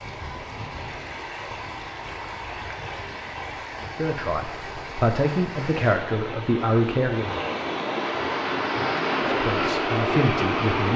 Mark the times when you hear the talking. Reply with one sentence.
The talking can be heard from 3.8 to 7.3 s and from 9.2 to 10.9 s.